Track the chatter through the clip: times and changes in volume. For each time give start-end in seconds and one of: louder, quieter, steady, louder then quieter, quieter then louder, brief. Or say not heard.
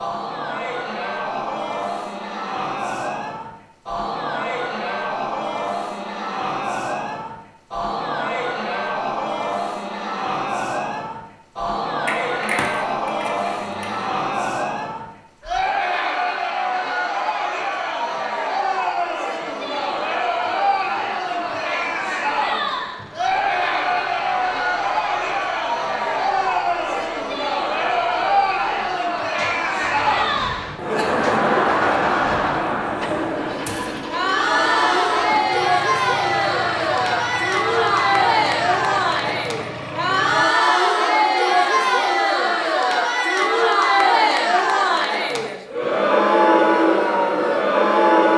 0.0-48.3 louder.